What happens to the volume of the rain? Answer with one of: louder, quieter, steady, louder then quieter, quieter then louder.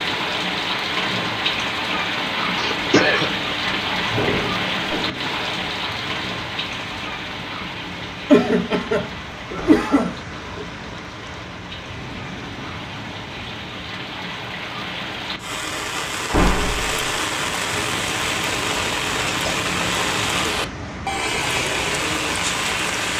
quieter then louder.